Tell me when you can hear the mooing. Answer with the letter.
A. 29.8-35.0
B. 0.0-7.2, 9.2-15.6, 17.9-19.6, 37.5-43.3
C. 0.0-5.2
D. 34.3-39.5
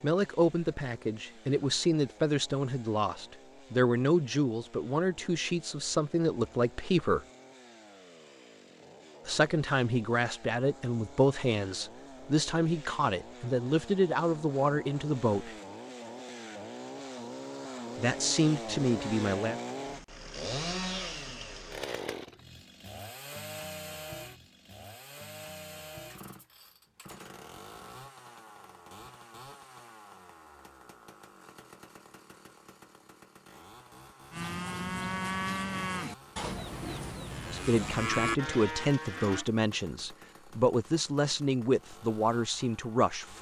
D.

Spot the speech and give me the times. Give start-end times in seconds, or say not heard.
0.0-7.2, 9.2-15.6, 17.9-19.6, 37.5-43.3.